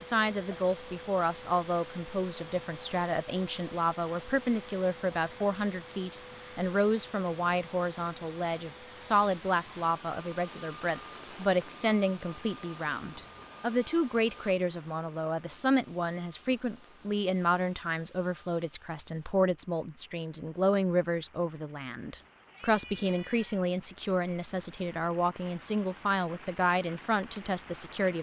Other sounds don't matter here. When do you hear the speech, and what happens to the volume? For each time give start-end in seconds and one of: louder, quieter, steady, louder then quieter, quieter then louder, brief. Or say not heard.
0.0-28.1 steady.